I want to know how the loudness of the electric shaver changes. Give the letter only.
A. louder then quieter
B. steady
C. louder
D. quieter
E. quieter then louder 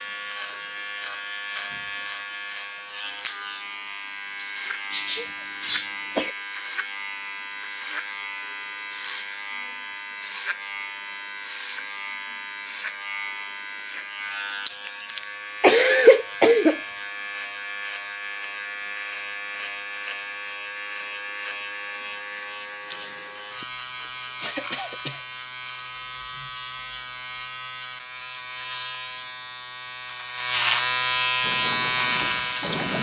C.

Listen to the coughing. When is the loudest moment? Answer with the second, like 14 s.
16 s.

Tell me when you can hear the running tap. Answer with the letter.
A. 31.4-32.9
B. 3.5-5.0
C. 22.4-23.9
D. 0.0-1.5
A.